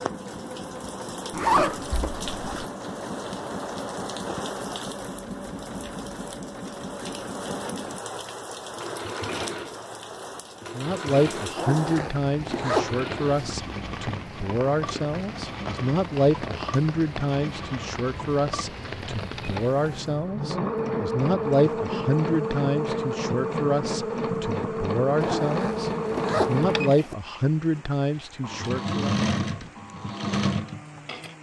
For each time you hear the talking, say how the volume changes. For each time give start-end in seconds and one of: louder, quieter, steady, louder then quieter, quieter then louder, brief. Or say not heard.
10.7-29.1 steady.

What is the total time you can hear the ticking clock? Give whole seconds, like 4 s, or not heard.
not heard.